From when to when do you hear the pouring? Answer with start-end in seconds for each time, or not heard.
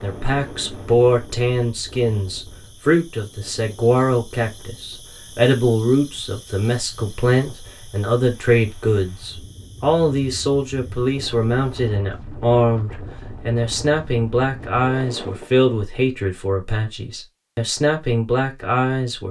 not heard.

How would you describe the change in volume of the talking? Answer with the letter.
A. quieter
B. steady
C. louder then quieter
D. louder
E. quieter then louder
B.